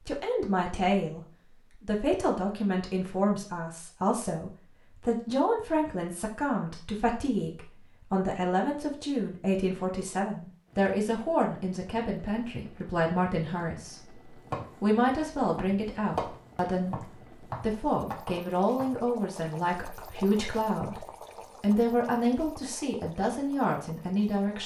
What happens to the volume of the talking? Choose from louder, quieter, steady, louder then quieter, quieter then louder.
steady.